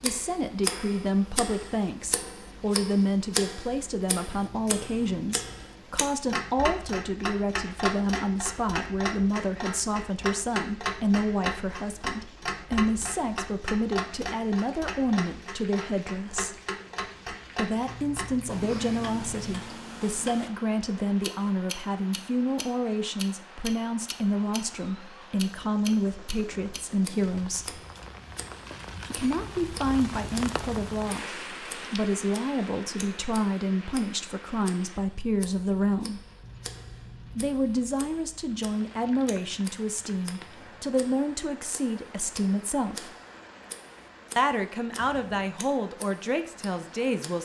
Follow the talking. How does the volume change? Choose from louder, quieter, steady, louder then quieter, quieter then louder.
steady.